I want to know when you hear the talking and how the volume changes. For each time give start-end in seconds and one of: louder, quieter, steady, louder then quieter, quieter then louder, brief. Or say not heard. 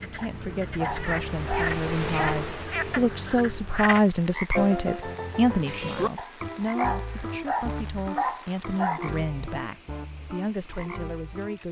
0.0-11.6 louder then quieter.